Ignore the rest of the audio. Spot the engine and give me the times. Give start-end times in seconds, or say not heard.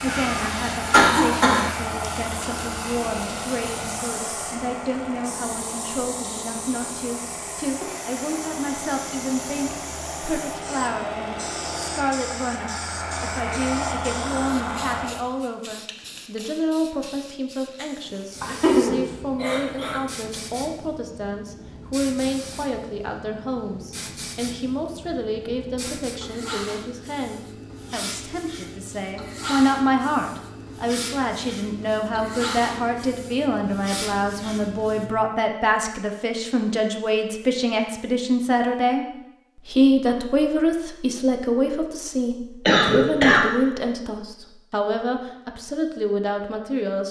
0.0-15.2.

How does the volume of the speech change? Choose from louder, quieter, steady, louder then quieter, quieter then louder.
louder.